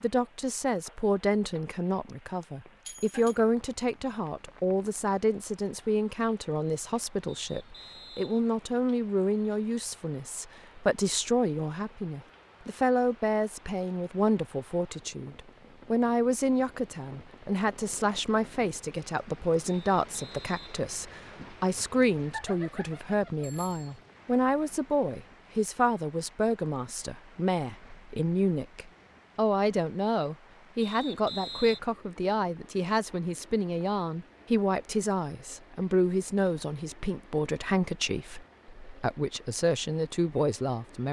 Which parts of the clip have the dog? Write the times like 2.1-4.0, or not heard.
not heard.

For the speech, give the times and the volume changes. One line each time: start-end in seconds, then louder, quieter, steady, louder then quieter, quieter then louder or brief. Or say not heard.
0.0-41.0 steady.